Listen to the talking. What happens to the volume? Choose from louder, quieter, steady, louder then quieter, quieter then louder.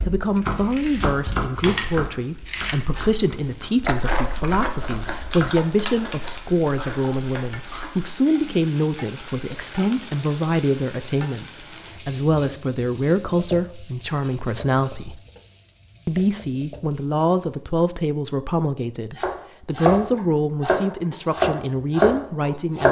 steady.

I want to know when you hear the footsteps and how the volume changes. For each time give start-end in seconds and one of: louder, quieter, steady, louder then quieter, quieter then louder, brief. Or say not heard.
not heard.